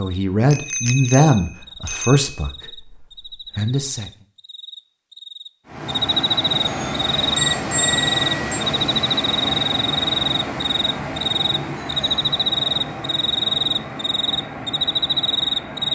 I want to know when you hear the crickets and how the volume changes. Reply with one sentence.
The crickets can be heard from 0.0 to 15.9 s, getting louder.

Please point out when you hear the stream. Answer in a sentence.
The stream can be heard from 5.7 to 15.9 s.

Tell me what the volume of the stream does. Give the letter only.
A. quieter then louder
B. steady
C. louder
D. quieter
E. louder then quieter
D.